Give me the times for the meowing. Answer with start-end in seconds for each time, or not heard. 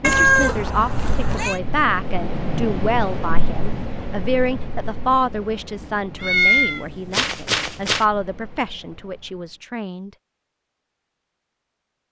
0.0-1.6, 6.2-8.1.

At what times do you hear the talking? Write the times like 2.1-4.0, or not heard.
0.0-10.1.